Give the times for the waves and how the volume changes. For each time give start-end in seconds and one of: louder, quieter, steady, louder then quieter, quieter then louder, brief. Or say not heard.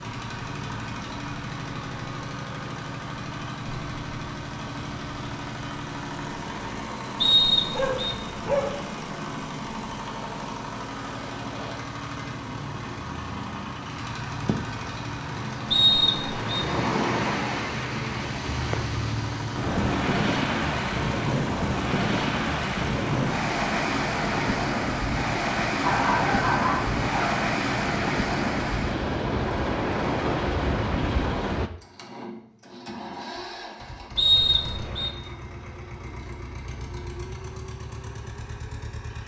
0.0-31.7 louder.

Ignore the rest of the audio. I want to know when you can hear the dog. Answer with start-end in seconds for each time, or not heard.
7.5-8.9, 25.8-27.4.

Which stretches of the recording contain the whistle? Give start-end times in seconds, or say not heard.
7.2-8.2, 15.7-16.5, 34.1-35.1.